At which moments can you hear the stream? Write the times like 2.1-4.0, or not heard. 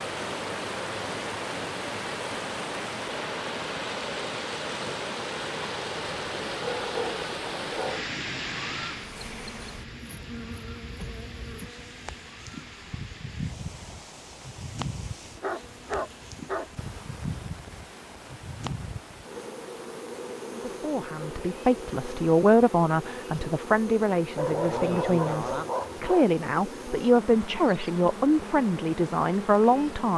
0.0-30.1.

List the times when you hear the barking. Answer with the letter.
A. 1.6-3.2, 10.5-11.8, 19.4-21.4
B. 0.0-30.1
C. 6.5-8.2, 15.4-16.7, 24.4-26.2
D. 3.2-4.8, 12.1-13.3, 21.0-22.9
C.